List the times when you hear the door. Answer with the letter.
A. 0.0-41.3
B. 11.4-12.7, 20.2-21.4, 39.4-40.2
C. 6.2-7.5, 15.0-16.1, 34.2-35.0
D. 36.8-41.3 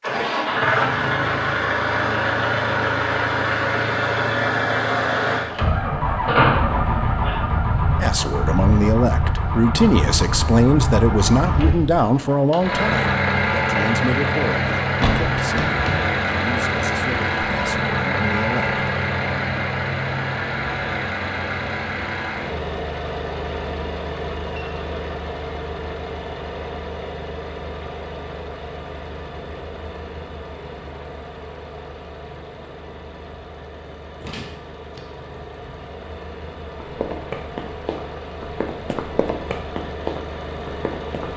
C.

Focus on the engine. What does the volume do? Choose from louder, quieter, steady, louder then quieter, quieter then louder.
quieter.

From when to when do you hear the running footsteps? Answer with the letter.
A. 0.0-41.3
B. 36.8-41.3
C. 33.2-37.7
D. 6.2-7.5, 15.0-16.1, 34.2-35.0
B.